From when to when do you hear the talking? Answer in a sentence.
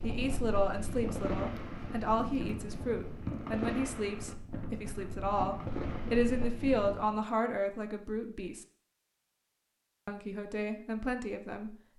You can hear the talking from 0.0 to 8.7 s and from 10.1 to 11.8 s.